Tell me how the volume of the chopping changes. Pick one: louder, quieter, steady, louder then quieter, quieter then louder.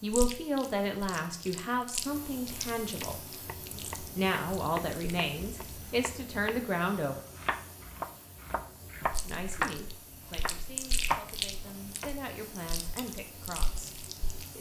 louder.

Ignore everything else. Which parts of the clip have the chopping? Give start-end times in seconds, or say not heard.
3.0-6.6, 7.2-12.2.